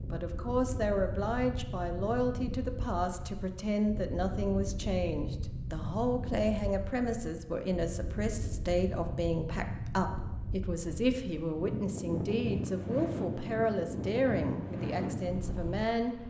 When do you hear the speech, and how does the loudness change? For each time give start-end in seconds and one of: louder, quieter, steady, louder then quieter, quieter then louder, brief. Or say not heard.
0.1-16.2 steady.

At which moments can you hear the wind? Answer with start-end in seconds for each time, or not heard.
0.0-16.2.